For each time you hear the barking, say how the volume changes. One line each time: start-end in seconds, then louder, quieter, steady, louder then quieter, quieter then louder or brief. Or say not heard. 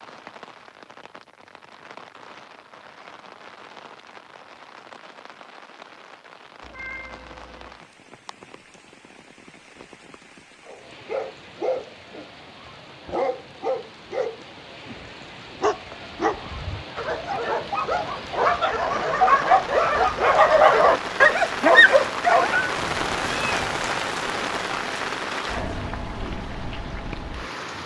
10.7-22.7 louder.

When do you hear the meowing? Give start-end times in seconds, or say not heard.
6.6-7.8, 22.8-23.9.